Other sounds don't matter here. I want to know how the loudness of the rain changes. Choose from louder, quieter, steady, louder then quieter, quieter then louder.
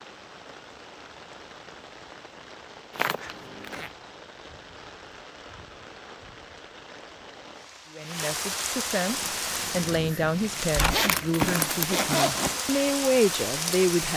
louder.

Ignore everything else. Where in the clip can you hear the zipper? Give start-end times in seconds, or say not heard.
3.0-3.9, 10.9-12.6.